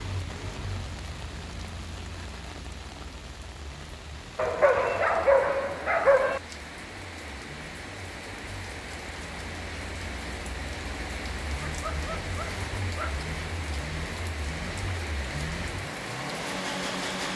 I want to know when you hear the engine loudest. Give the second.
17 s.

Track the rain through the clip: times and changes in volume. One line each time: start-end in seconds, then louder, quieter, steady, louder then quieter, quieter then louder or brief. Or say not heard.
0.0-17.3 louder.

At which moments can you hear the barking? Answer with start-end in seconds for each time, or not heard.
4.3-6.4, 11.8-13.2.